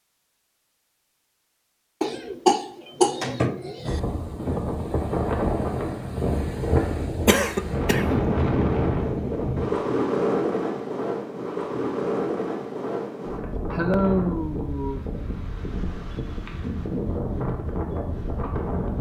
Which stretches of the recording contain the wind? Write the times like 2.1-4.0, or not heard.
3.8-18.9.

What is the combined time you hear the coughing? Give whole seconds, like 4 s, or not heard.
5 s.